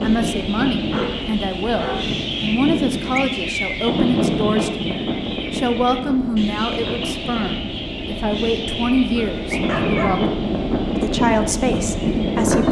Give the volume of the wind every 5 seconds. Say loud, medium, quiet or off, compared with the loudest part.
loud, medium, loud.